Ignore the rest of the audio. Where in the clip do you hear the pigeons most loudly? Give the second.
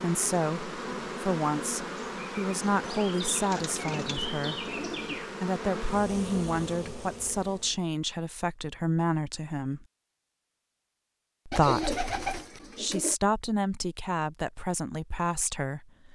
12 s.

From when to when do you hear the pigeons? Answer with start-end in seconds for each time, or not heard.
3.4-5.2, 11.5-13.2.